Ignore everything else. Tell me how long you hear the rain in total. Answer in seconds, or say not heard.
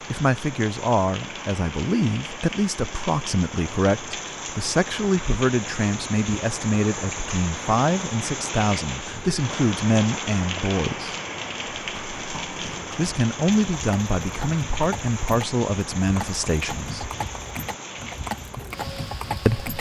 20 s.